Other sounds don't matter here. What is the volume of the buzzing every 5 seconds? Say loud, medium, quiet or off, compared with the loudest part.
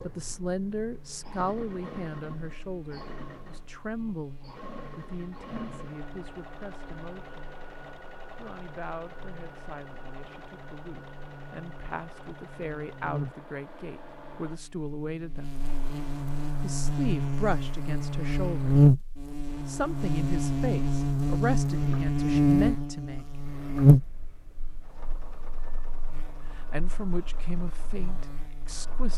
quiet, quiet, quiet, loud, loud, quiet.